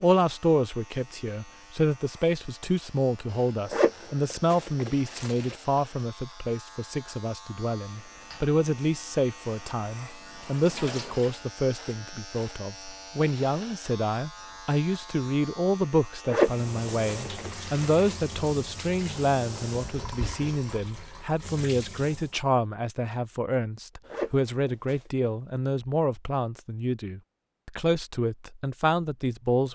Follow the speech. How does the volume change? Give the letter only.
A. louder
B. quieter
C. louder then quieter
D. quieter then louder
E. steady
E.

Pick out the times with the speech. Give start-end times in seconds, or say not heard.
0.0-29.7.